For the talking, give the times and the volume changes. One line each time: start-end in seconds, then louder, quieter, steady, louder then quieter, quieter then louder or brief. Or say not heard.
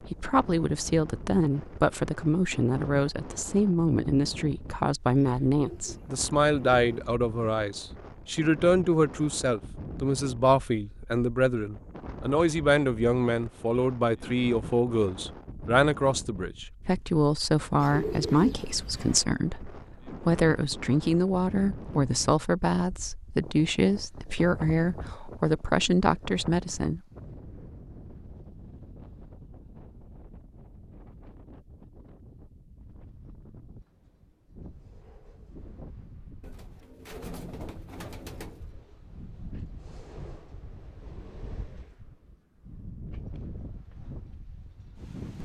0.0-27.0 steady.